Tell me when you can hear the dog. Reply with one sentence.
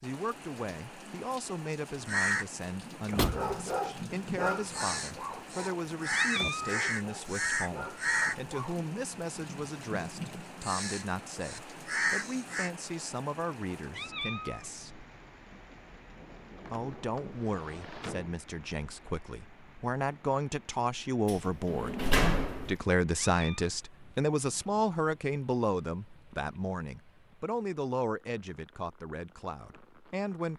You can hear the dog from 3.0 to 8.8 s.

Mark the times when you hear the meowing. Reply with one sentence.
The meowing can be heard from 5.7 to 6.8 s, from 13.5 to 14.7 s and from 22.8 to 23.7 s.